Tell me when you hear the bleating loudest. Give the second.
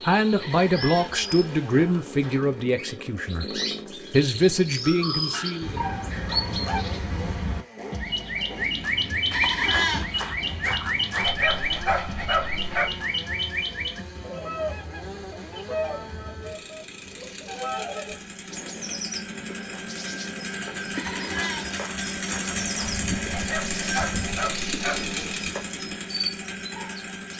10 s.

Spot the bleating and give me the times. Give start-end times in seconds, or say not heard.
0.3-2.4, 9.3-11.3, 20.9-22.9.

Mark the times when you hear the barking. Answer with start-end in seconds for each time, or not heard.
4.8-6.8, 11.2-12.9, 23.3-25.2.